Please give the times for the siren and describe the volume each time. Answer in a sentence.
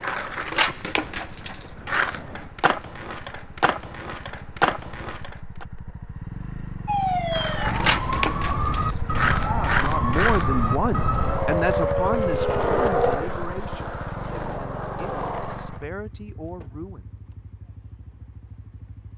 The siren can be heard from 6.8 to 13.2 s, at a steady volume.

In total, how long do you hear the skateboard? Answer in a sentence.
The skateboard can be heard for 14 seconds in total.